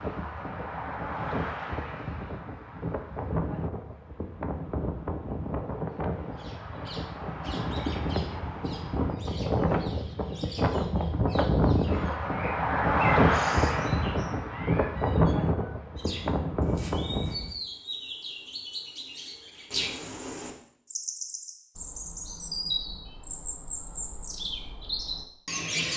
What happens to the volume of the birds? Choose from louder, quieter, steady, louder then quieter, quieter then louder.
louder.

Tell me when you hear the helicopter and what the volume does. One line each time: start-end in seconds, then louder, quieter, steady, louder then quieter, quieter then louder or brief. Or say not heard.
not heard.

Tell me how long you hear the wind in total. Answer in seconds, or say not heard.
17 s.